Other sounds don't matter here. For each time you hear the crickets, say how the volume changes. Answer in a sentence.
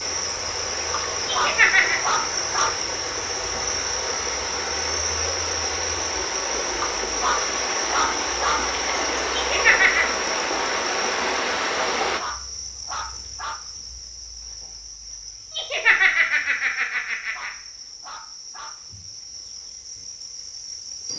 You can hear the crickets from 0.0 to 21.1 s, getting quieter.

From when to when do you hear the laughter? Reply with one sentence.
You can hear the laughter from 1.2 to 2.0 s, from 9.3 to 10.1 s and from 15.5 to 17.5 s.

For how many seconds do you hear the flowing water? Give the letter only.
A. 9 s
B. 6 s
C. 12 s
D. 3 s
C.